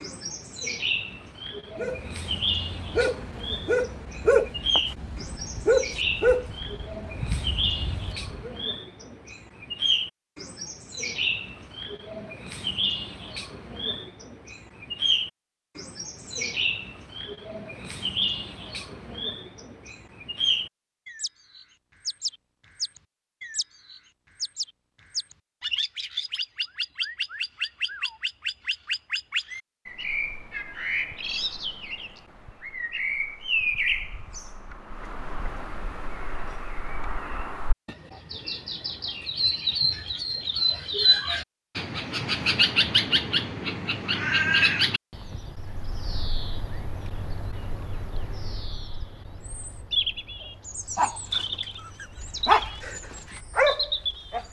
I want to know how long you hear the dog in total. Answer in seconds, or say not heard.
10 s.